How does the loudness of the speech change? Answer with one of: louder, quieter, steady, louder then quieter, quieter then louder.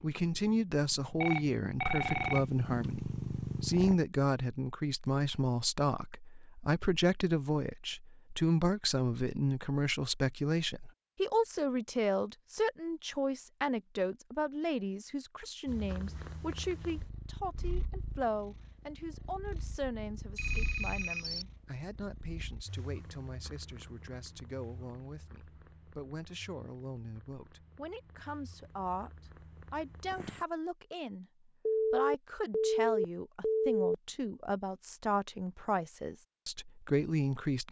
quieter then louder.